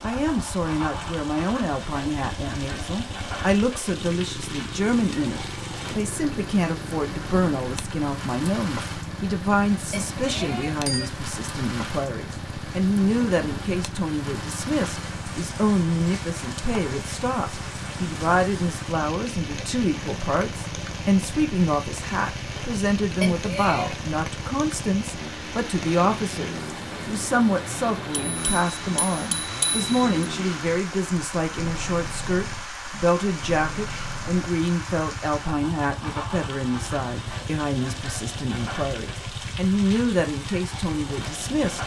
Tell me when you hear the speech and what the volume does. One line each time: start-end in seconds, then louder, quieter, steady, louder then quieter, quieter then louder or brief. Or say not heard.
0.0-41.8 steady.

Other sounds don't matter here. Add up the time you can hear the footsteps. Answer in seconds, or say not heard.
not heard.